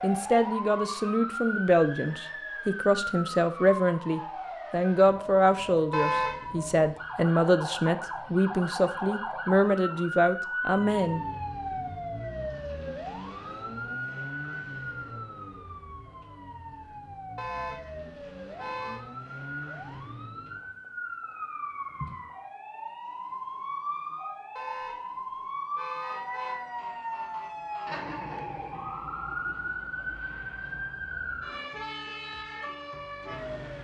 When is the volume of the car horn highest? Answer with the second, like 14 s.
6 s.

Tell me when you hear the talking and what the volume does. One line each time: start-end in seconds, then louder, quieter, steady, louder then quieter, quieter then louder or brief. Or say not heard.
0.0-11.2 steady.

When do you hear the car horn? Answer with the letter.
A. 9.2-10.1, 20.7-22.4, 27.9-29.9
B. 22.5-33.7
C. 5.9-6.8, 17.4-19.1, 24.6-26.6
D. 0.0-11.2
C.